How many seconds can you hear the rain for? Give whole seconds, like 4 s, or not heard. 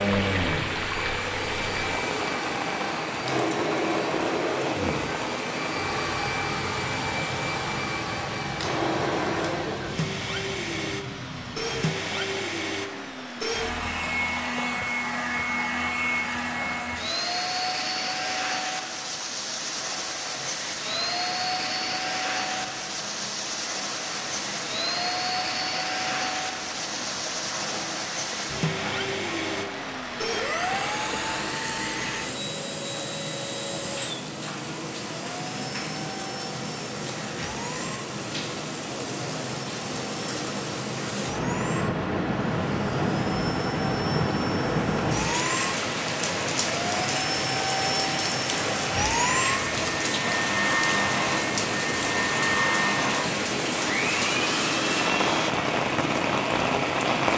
57 s.